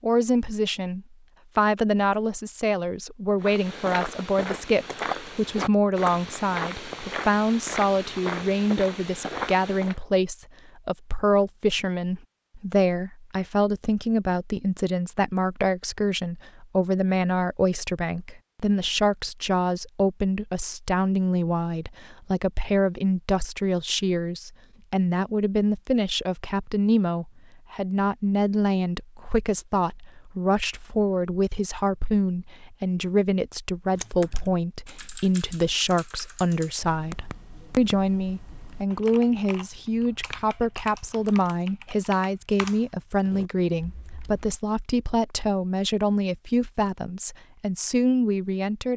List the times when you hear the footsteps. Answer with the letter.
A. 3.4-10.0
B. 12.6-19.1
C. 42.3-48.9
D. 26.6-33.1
A.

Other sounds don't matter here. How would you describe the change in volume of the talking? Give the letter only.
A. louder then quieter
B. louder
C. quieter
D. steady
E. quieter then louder
D.